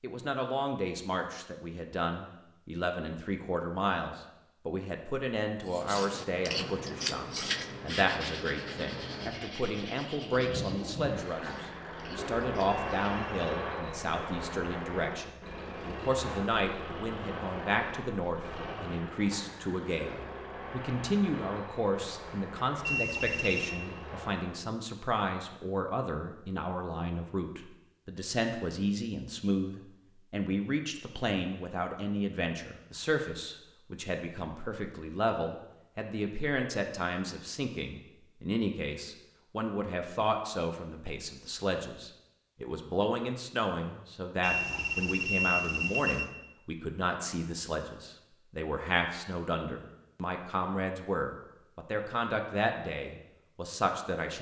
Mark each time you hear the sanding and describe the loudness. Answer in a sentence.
The sanding can be heard from 5.7 to 13.2 s, getting quieter.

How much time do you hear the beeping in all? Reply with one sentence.
The beeping can be heard for 4 seconds in total.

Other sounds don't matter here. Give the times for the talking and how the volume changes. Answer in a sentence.
The talking can be heard from 0.0 to 54.3 s, at a steady volume.